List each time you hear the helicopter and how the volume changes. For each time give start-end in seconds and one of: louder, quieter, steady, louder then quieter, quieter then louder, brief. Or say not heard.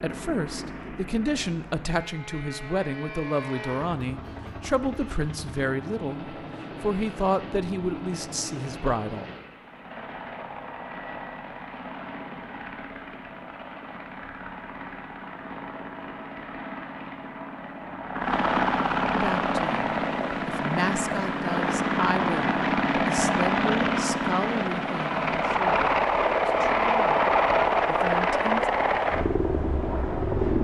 0.0-30.5 louder.